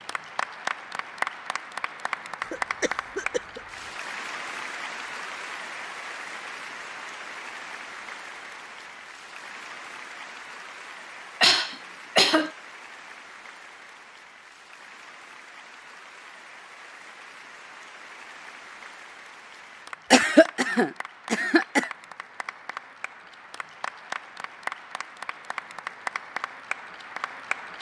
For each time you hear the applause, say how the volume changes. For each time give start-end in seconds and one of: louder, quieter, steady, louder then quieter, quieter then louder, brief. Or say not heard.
0.0-27.7 quieter then louder.